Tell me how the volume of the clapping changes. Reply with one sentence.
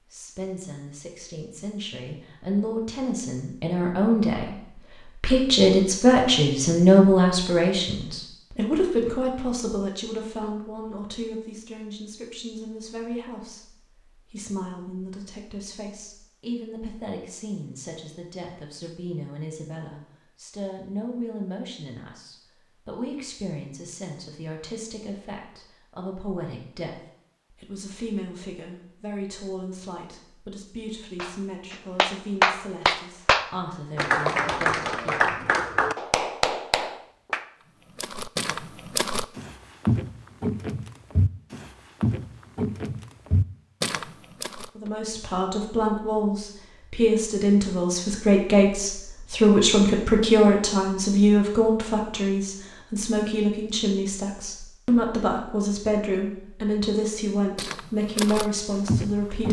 The loudness of the clapping goes down.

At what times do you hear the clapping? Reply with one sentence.
The clapping can be heard from 31.1 to 37.5 s.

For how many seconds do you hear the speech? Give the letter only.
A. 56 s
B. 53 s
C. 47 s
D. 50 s
D.